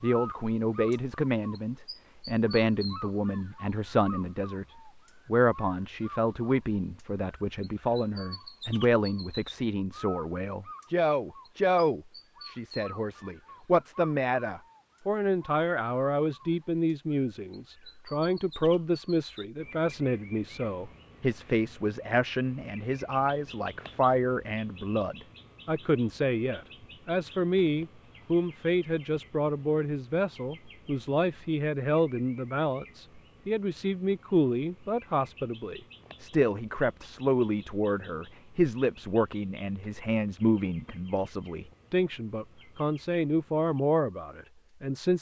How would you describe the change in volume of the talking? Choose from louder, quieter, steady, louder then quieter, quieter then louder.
steady.